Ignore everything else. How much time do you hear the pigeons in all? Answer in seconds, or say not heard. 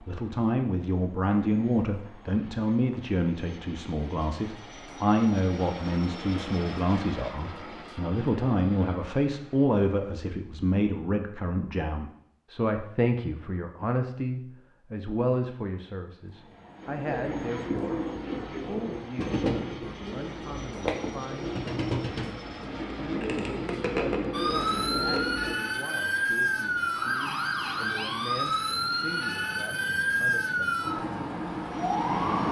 9 s.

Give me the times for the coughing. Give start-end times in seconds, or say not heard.
not heard.